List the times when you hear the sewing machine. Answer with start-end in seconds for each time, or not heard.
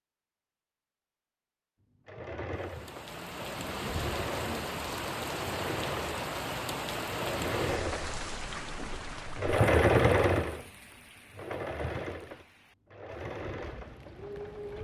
2.0-14.7.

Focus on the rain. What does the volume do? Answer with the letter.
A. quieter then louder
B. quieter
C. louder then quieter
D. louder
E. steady
B.